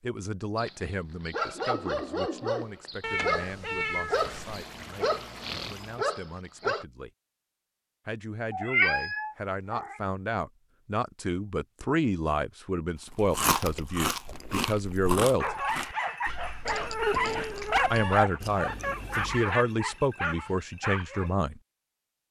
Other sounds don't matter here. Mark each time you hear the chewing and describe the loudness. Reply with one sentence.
You can hear the chewing from 13.1 to 19.5 s, getting quieter.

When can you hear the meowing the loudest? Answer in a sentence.
The loudest moment of the meowing is at 9 seconds.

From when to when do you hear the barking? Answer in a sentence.
You can hear the barking from 0.6 to 6.8 s and from 15.4 to 21.3 s.